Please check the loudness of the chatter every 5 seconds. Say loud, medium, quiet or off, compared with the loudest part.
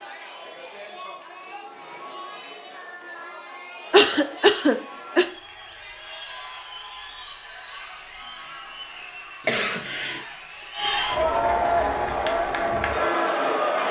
quiet, quiet, loud.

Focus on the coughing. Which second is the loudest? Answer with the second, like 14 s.
4 s.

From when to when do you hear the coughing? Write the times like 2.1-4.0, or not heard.
3.9-5.2, 9.4-10.2.